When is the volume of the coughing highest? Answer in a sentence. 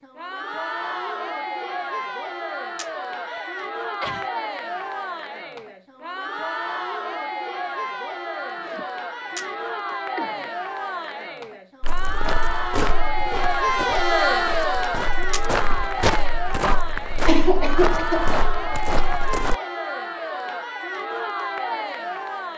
The loudest moment of the coughing is at 17 seconds.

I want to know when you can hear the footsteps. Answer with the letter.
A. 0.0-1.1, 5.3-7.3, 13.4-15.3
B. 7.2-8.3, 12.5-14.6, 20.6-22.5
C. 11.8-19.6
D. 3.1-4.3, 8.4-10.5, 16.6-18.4
C.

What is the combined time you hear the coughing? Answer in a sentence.
You can hear the coughing for 5 seconds altogether.